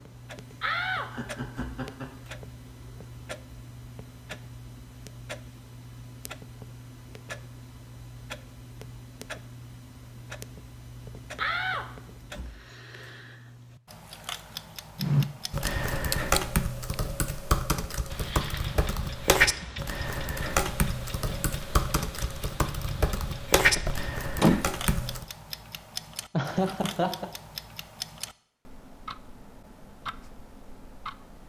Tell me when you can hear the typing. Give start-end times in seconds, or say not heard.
14.9-25.2.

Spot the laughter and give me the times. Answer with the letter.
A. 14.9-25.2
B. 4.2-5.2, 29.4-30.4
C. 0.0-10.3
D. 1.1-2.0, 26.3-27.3
D.